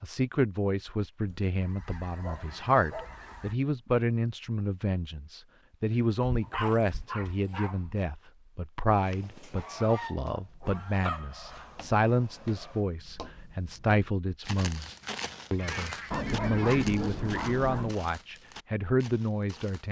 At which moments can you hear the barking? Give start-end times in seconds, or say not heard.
2.2-3.1, 6.2-8.0, 10.9-12.8, 16.1-17.9.